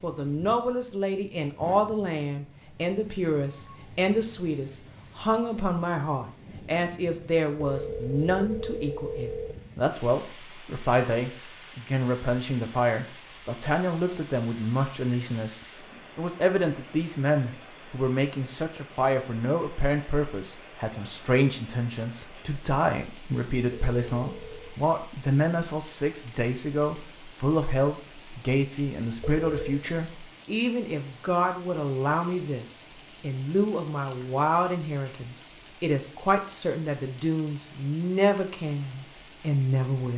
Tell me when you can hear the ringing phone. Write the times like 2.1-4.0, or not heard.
7.6-9.6, 23.7-24.8, 29.2-29.9.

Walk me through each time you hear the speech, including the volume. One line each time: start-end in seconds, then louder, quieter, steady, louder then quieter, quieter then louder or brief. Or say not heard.
0.0-40.1 steady.